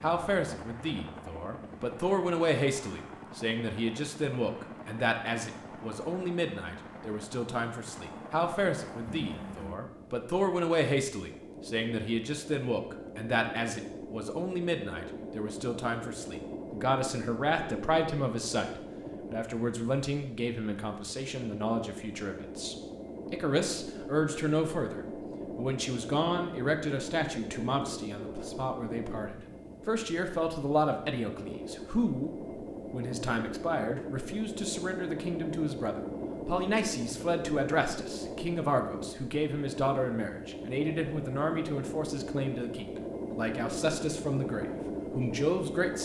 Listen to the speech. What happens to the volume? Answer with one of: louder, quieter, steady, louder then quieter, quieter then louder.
steady.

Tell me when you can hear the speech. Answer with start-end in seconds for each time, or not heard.
0.0-45.9.